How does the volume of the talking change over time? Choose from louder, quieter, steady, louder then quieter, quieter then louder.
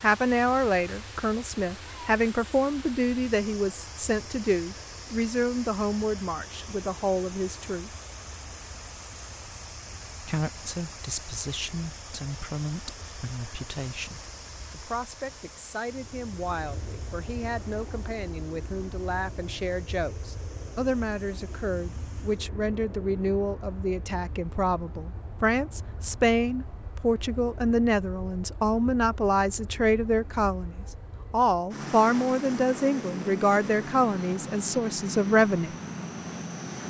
quieter then louder.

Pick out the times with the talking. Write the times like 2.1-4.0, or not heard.
0.0-7.9, 10.2-35.7.